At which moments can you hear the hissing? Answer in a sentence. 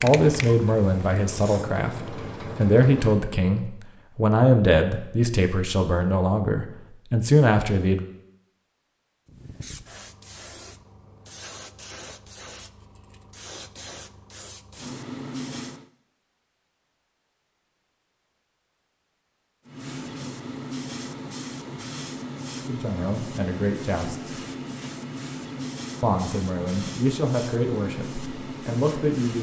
You can hear the hissing from 0.0 to 1.7 s, from 9.2 to 15.9 s and from 19.6 to 29.3 s.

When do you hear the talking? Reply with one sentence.
You can hear the talking from 0.0 to 8.1 s, from 22.6 to 24.4 s and from 26.0 to 29.3 s.